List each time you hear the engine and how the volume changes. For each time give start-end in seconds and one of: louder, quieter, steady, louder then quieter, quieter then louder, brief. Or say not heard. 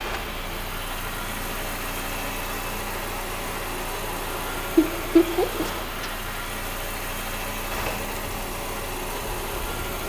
0.0-10.0 steady.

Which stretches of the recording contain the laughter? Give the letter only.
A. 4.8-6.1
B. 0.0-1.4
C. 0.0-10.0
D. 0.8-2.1
A.